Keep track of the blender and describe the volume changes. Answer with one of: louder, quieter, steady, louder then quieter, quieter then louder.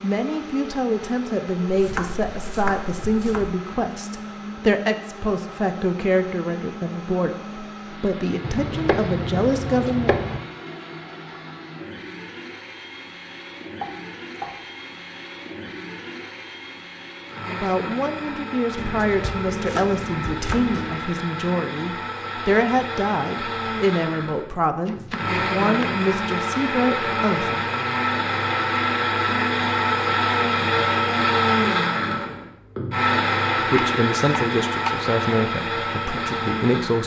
louder.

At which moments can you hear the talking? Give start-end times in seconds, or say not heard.
0.0-10.3, 17.5-27.6, 33.6-37.0.